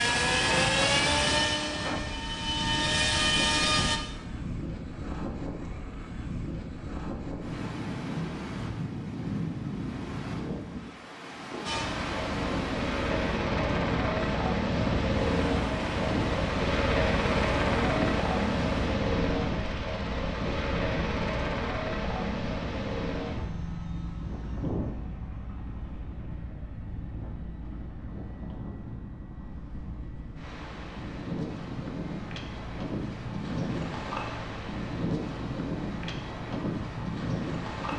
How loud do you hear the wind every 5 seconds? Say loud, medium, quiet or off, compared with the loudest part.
loud, loud, loud, loud, medium, quiet, loud, loud.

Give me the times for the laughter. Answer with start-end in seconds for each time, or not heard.
not heard.